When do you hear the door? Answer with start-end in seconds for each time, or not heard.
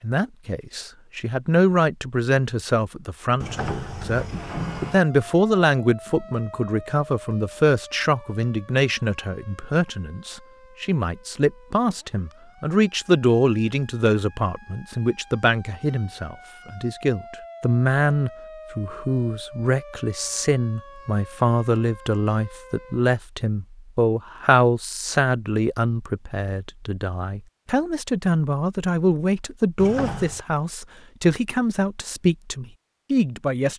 3.4-5.0, 29.8-30.4.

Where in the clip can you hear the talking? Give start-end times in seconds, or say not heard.
0.0-33.7.